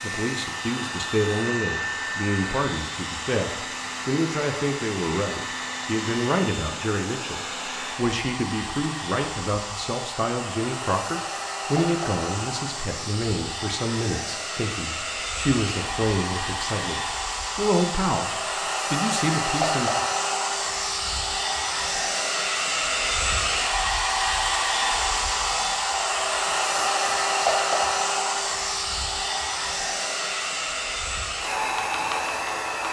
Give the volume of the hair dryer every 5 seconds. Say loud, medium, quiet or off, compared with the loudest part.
medium, medium, medium, loud, loud, loud, loud.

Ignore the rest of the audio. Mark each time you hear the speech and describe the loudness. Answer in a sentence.
The speech can be heard from 0.0 to 19.9 s, at a steady volume.